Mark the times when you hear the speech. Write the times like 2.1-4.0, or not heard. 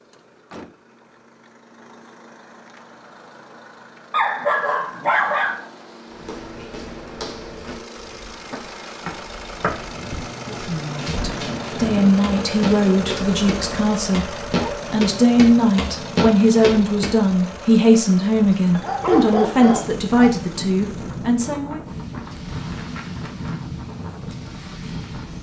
10.4-21.8.